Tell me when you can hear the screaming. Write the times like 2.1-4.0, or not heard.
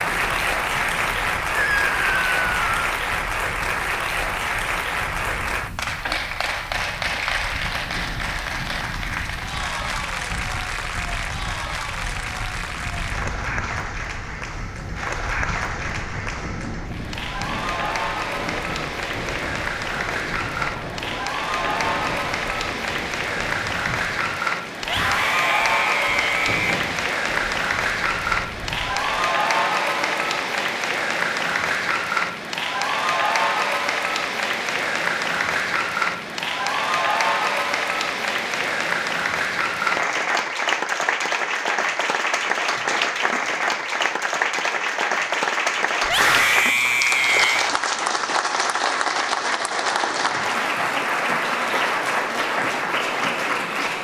1.6-2.9, 24.8-26.8, 46.0-47.8.